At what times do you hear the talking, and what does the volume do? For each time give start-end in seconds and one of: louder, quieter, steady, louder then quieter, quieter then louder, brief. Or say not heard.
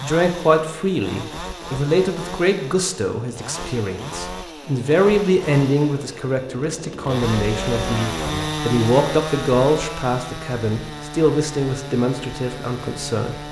0.0-13.3 steady.